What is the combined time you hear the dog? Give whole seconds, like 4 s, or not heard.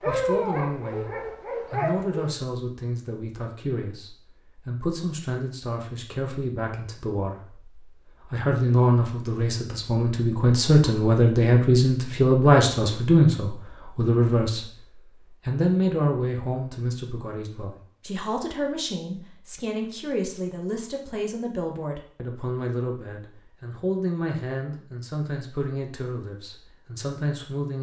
2 s.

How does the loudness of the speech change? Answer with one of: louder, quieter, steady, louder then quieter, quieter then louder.
louder then quieter.